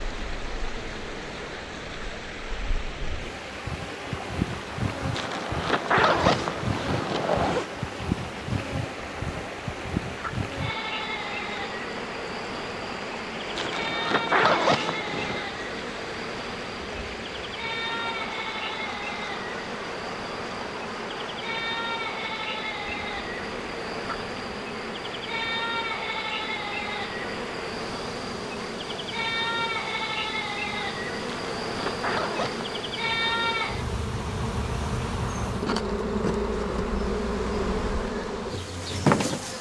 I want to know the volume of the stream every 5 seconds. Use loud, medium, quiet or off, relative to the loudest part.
loud, loud, loud, loud, loud, loud, medium, medium.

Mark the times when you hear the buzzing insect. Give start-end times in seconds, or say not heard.
0.0-39.5.